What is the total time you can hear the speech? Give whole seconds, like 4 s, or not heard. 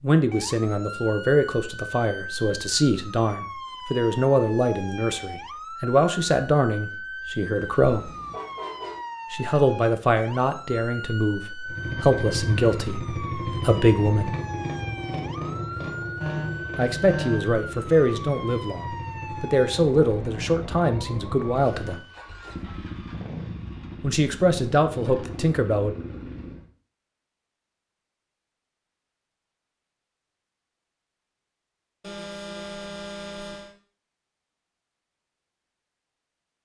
20 s.